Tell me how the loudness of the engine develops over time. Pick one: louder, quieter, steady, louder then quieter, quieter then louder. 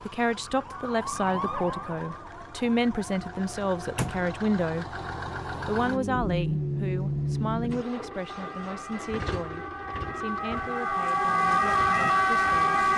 louder then quieter.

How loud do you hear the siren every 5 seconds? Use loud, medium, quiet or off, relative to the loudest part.
quiet, quiet, loud.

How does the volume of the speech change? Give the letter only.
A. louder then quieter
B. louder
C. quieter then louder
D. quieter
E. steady
D.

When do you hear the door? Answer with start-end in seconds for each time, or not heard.
3.1-4.3.